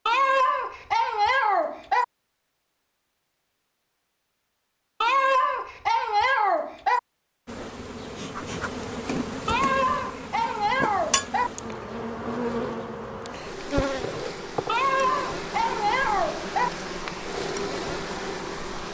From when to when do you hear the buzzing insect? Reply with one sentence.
You can hear the buzzing insect from 7.5 to 18.8 s.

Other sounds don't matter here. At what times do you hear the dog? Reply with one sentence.
The dog can be heard from 0.1 to 2.0 s, from 5.0 to 7.0 s, from 9.4 to 11.5 s and from 14.7 to 16.7 s.